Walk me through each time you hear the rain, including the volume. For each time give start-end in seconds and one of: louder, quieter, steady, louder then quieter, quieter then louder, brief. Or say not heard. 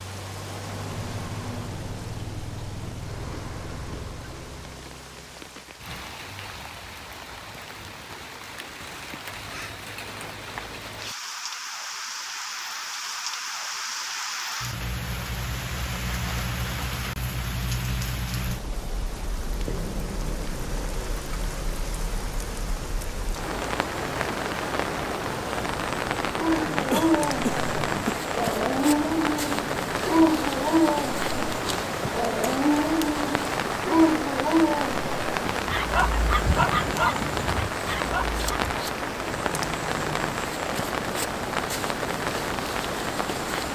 0.0-43.6 louder.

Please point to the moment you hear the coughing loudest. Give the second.
27 s.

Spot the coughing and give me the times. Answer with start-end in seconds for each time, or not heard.
26.9-28.2.